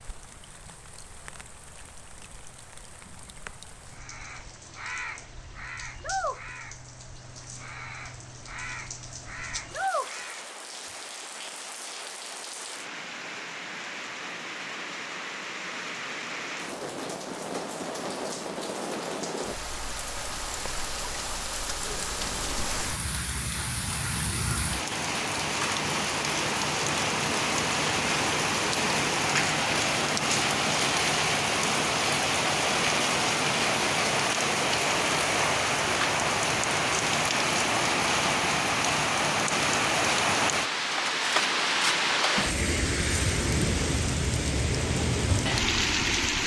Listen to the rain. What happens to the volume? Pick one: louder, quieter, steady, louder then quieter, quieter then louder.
louder.